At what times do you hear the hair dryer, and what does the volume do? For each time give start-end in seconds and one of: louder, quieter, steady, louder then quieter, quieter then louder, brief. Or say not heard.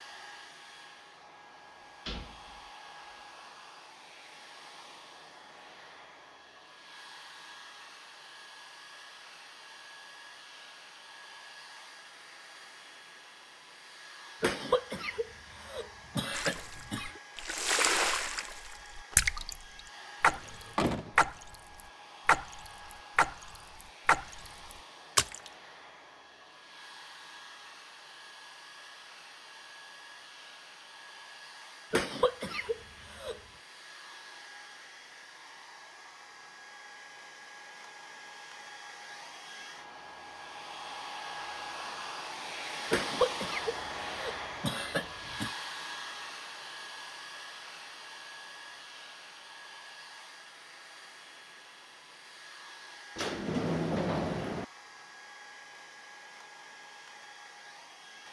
0.0-58.2 louder then quieter.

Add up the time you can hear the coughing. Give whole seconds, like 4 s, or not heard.
7 s.